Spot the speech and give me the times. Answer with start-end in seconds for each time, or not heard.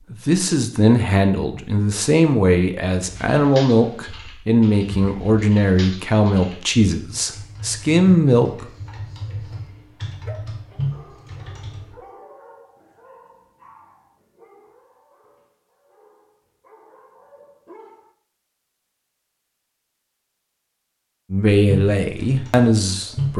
0.1-8.7, 21.3-23.3.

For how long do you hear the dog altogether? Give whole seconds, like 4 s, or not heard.
9 s.